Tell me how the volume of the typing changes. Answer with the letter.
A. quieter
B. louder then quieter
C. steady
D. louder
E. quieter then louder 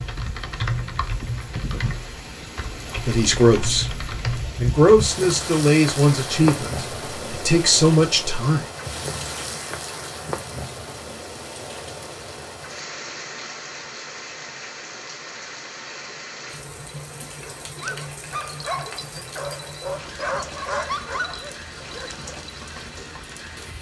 E.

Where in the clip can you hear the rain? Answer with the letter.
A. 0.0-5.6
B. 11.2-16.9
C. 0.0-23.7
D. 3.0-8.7
C.